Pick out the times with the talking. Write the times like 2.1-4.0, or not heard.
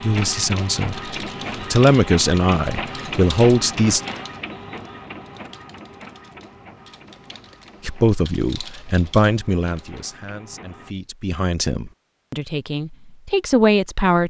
0.0-4.0, 7.8-14.2.